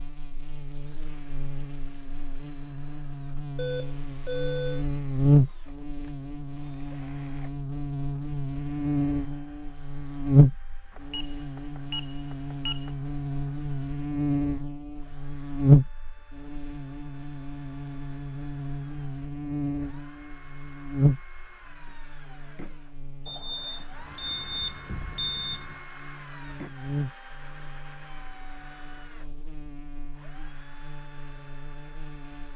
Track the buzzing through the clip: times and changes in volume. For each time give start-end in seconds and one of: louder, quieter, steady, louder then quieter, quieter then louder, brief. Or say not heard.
0.0-32.5 quieter.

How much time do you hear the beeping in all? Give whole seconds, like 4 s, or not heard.
6 s.